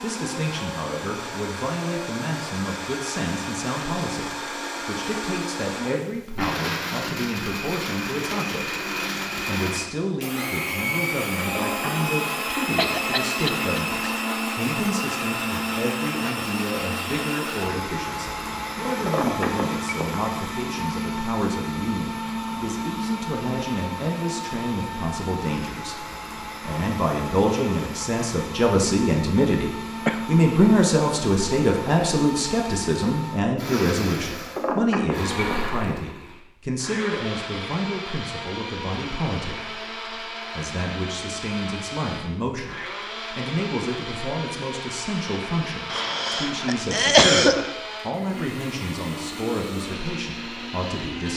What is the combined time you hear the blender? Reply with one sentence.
The blender can be heard for 51 seconds in total.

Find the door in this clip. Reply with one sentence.
The door can't be heard in this clip.